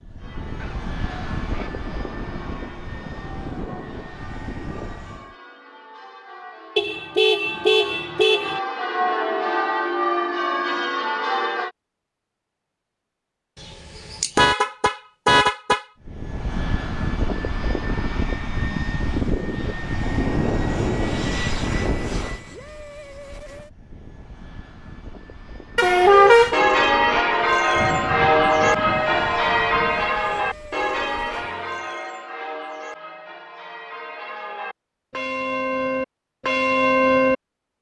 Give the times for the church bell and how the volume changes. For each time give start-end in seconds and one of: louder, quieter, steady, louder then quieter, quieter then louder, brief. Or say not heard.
0.1-11.7 louder
26.1-37.4 quieter then louder.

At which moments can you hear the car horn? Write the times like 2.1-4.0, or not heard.
6.8-8.6, 13.6-15.8, 25.8-26.6.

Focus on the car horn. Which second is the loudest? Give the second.
26 s.